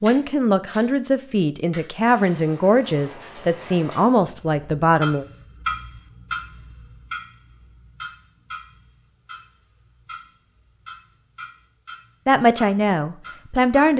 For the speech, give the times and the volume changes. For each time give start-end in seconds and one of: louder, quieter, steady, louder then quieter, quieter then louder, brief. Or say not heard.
0.0-5.2 steady
12.2-13.9 brief.